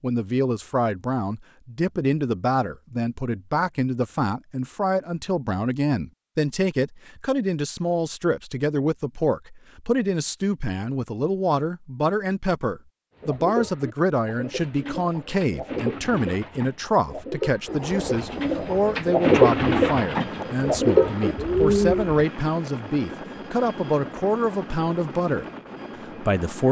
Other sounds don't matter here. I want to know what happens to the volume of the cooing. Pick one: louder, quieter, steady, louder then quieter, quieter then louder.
louder.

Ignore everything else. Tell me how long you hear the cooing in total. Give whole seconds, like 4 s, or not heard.
9 s.